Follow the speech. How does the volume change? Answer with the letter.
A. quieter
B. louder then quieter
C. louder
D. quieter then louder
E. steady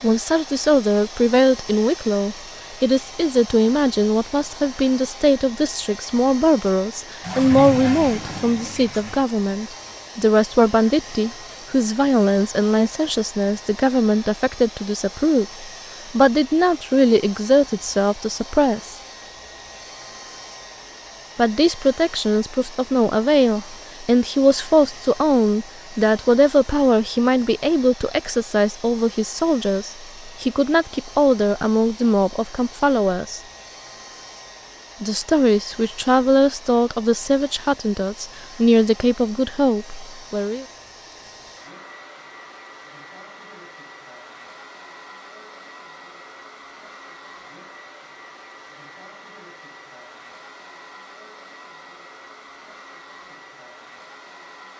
E.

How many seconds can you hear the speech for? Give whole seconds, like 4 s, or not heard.
37 s.